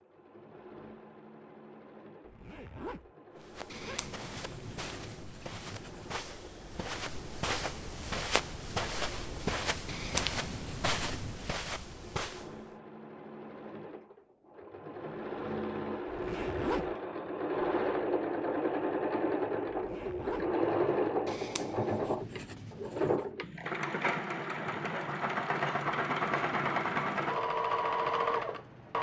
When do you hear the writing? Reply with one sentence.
The writing can be heard from 3.6 to 6.2 s, from 9.8 to 11.5 s and from 21.2 to 23.3 s.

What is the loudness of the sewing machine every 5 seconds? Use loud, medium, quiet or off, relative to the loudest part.
quiet, quiet, quiet, loud, loud, loud.